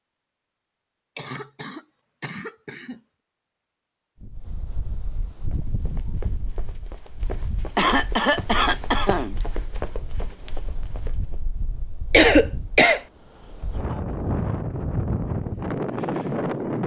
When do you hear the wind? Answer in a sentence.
The wind can be heard from 4.2 to 16.8 s.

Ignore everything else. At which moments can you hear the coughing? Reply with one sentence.
The coughing can be heard from 1.1 to 3.0 s, from 7.8 to 9.3 s and from 12.1 to 13.0 s.